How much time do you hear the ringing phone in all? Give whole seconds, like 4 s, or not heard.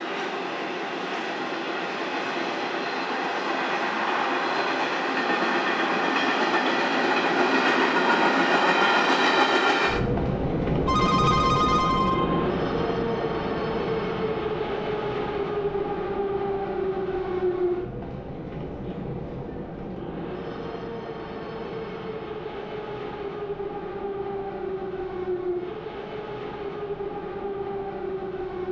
2 s.